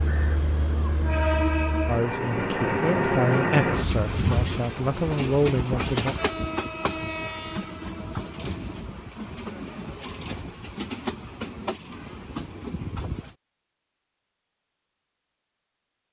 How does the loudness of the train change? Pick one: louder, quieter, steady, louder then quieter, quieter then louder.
quieter.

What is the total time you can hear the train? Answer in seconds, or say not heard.
13 s.